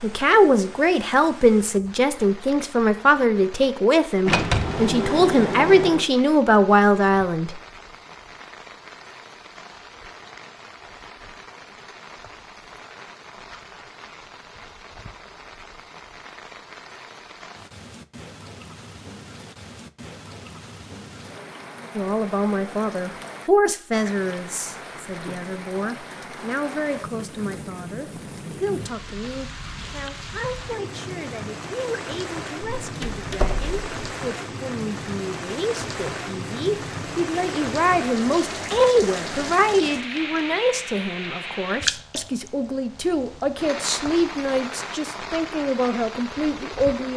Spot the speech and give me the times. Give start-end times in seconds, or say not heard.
0.0-7.5, 21.9-47.1.